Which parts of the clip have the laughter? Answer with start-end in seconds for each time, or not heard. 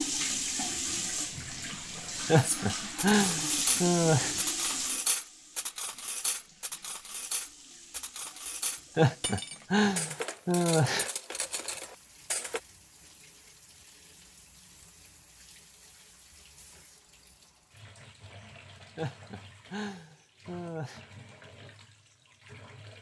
2.2-4.3, 8.9-11.1, 18.9-21.0.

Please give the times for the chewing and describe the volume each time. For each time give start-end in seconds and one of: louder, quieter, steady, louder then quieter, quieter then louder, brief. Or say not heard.
not heard.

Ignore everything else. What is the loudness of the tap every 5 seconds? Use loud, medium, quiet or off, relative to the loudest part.
loud, quiet, quiet, quiet, quiet.